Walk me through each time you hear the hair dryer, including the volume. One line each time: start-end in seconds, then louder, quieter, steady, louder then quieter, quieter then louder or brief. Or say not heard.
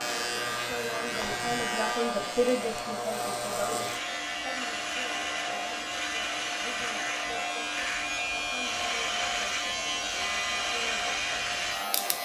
0.0-12.1 steady.